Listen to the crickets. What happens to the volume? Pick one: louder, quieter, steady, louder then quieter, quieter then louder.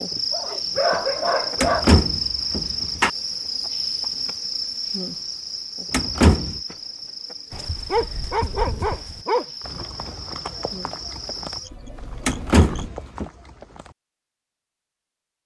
quieter.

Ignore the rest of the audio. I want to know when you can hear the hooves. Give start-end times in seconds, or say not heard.
7.5-13.9.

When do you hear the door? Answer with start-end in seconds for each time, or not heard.
1.6-3.1, 5.9-6.6, 12.2-13.2.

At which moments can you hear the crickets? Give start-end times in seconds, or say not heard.
0.0-12.9.